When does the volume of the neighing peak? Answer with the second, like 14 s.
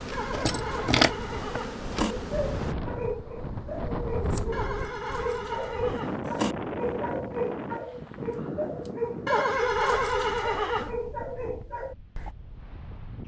10 s.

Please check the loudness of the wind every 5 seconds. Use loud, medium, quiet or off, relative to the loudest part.
loud, loud, medium.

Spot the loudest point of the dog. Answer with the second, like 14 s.
1 s.